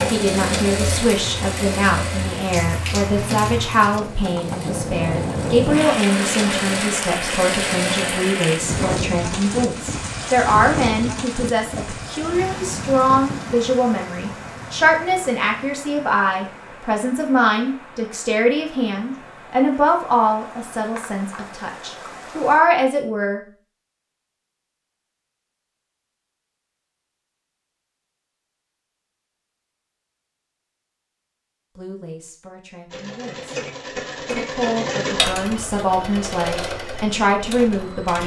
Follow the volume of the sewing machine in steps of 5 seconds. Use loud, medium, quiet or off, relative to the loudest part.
loud, loud, off, off, off, off, loud, loud.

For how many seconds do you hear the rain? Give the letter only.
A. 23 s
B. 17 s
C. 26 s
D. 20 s
A.